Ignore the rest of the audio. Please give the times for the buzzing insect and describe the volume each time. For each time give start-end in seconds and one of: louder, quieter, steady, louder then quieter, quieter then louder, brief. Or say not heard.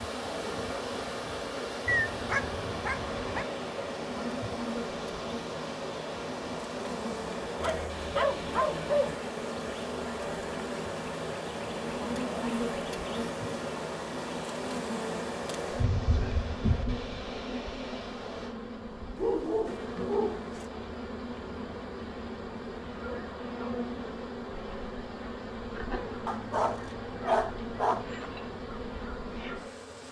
1.9-30.0 steady.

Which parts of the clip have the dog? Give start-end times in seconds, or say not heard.
1.9-3.5, 7.6-9.2, 19.1-20.6, 26.2-28.2.